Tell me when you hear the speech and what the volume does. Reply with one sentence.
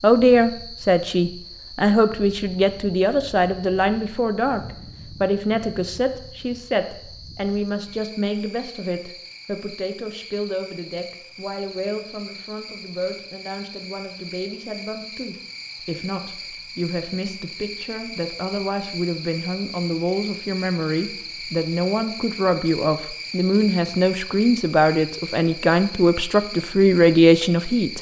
The speech can be heard from 0.0 to 27.9 s, getting quieter then louder.